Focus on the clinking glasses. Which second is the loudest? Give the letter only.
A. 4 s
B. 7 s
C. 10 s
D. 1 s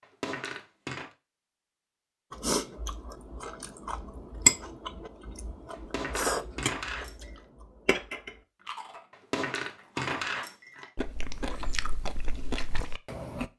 C.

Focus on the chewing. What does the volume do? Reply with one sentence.
The volume of the chewing goes down.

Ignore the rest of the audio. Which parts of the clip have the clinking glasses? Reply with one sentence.
The clinking glasses can be heard from 0.0 to 1.1 s, from 5.7 to 7.4 s and from 9.1 to 10.9 s.